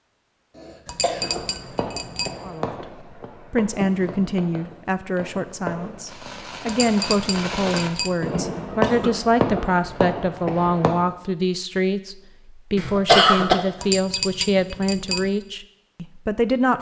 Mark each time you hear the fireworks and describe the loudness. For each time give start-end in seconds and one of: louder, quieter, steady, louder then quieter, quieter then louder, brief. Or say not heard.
1.2-10.9 louder.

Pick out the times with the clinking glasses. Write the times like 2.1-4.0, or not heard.
0.8-2.4, 6.7-8.2, 13.8-15.3.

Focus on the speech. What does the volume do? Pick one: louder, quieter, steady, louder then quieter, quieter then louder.
steady.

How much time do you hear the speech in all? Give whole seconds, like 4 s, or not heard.
14 s.